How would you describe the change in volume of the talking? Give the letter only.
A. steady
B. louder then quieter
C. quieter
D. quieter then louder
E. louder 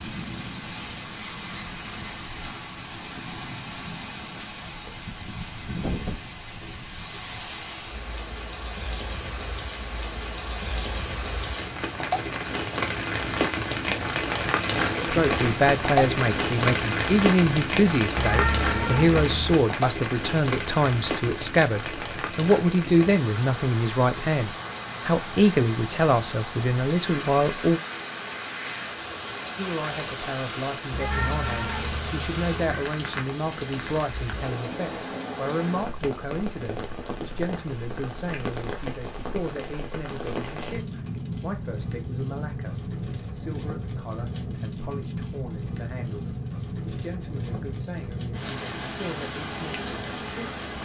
C.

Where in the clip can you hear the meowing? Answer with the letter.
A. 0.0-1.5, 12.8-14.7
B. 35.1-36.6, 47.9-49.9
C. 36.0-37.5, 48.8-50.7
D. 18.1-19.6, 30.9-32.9
D.